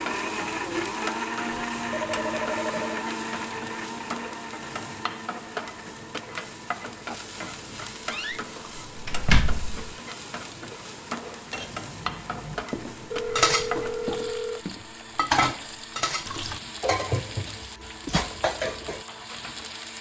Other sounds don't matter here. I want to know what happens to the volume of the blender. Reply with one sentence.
The volume of the blender goes down.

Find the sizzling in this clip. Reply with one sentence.
The sizzling can be heard from 0.0 to 19.9 s.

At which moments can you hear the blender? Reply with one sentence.
You can hear the blender from 0.0 to 19.9 s.